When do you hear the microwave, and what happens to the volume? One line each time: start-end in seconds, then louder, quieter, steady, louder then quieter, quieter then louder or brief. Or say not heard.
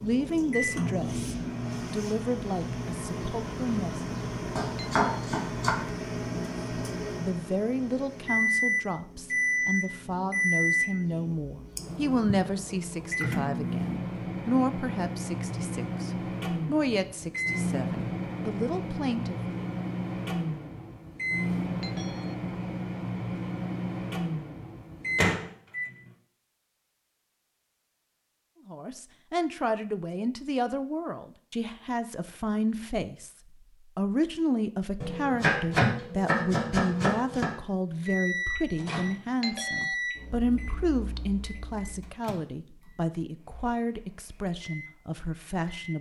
0.0-26.1 steady
38.0-45.9 quieter then louder.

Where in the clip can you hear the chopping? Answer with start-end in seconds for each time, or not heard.
4.5-5.7, 35.0-37.5.